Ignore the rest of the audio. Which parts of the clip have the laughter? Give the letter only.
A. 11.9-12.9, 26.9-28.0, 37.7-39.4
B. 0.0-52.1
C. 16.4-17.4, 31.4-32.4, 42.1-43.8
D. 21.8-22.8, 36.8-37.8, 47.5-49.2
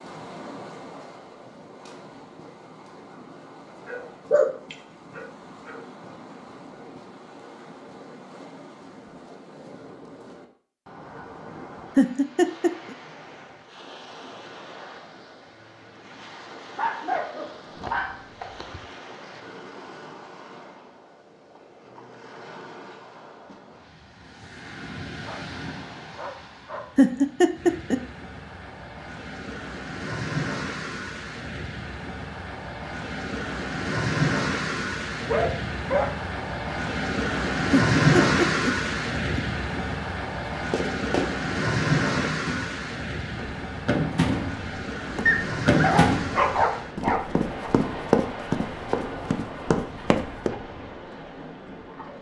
A.